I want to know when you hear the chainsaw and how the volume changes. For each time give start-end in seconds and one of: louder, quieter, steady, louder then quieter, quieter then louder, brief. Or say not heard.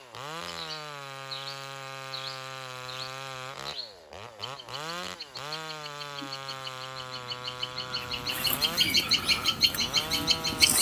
0.0-10.7 steady.